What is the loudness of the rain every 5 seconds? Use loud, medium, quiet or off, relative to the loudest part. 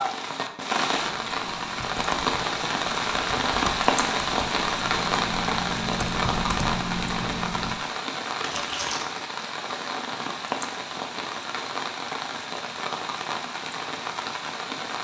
loud, loud, medium.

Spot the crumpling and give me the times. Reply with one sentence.
The crumpling can be heard from 8.4 to 9.1 s.